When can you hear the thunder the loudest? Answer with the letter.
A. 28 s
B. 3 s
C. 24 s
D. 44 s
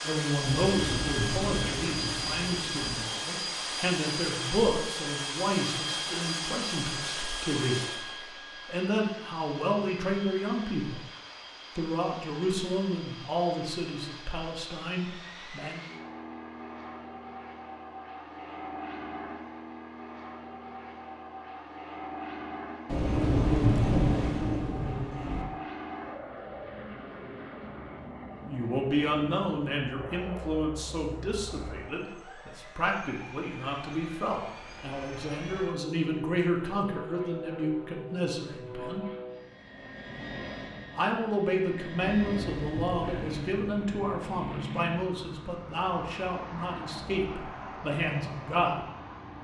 C.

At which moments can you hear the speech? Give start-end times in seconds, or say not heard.
0.0-8.0, 8.7-11.0, 11.8-15.8, 28.4-39.0, 41.0-48.8.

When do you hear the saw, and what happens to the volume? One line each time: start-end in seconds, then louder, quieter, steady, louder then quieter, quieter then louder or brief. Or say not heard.
not heard.